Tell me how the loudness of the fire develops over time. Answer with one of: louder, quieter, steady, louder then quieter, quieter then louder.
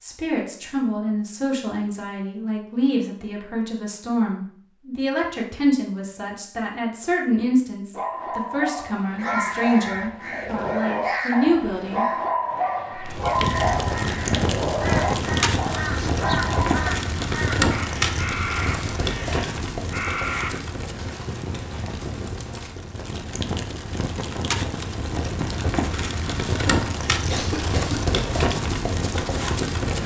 quieter then louder.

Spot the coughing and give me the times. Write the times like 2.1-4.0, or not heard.
27.3-28.2.